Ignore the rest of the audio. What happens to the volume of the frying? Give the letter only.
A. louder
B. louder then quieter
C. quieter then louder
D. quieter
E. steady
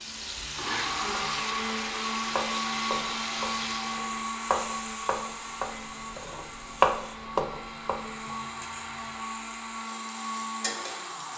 C.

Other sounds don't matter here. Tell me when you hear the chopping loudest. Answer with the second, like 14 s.
7 s.